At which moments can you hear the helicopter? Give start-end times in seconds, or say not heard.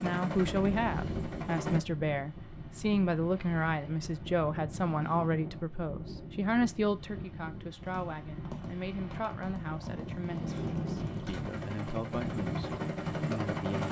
0.0-1.8, 11.3-13.8.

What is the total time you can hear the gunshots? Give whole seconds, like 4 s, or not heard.
4 s.